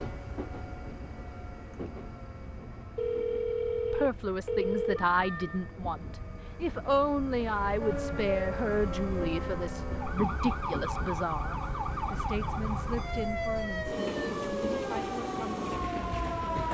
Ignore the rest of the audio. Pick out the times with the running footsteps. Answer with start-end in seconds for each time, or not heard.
not heard.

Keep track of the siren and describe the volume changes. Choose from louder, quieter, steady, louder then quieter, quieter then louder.
steady.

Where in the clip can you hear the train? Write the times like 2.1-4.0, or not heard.
0.0-16.7.